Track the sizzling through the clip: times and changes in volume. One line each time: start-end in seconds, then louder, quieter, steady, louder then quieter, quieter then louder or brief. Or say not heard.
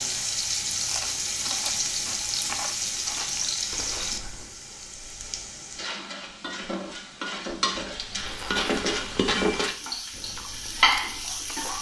0.0-11.7 quieter then louder.